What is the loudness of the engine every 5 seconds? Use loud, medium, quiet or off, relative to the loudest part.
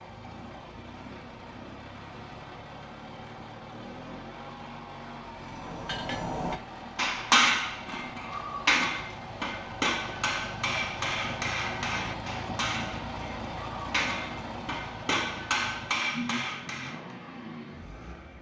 medium, medium, loud, loud.